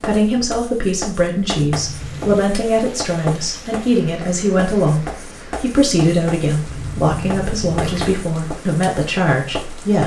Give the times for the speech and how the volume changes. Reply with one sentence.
The speech can be heard from 0.0 to 10.0 s, at a steady volume.